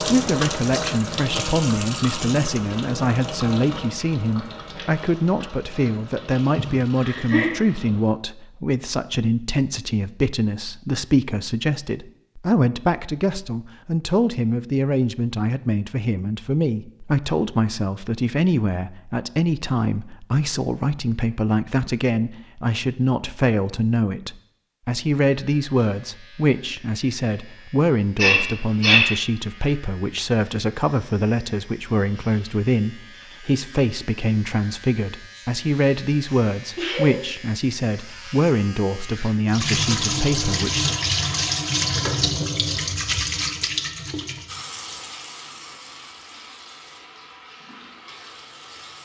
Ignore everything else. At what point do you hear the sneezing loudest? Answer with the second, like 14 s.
29 s.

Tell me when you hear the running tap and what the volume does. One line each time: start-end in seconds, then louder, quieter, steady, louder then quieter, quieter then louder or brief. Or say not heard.
0.0-8.1 quieter
39.5-48.9 quieter.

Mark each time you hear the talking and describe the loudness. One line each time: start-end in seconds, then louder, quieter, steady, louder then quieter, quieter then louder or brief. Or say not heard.
0.0-41.0 steady.